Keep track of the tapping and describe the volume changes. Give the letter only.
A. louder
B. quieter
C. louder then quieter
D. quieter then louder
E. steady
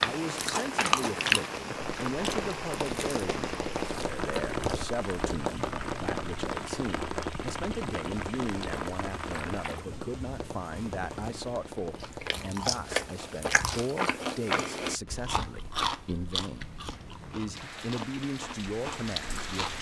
B.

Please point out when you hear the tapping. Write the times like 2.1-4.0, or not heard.
1.8-12.3.